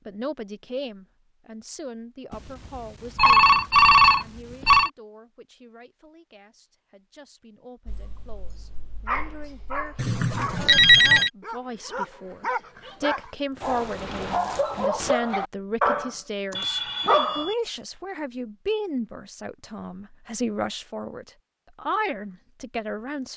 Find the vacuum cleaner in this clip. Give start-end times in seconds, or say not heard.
not heard.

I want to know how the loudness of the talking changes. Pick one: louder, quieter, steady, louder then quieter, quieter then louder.
quieter then louder.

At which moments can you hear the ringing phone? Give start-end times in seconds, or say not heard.
3.1-4.9, 9.9-11.3, 16.6-17.6.